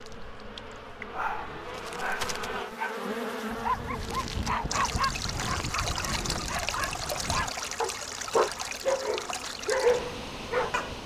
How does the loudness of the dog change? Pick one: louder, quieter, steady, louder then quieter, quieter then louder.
louder.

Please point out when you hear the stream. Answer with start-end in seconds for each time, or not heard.
4.7-11.0.